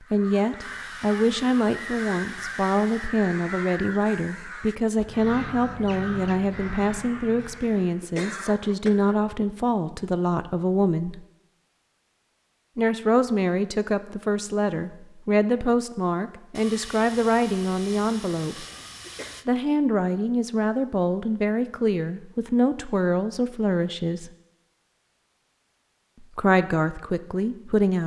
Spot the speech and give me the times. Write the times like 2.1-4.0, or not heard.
0.1-11.2, 12.8-18.6, 19.4-24.3, 26.2-28.0.